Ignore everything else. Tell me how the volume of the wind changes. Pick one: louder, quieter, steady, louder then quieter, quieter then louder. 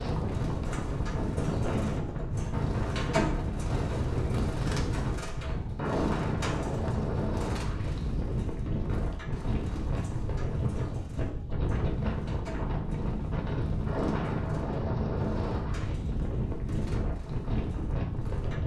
steady.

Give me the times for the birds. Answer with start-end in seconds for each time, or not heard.
0.0-18.6.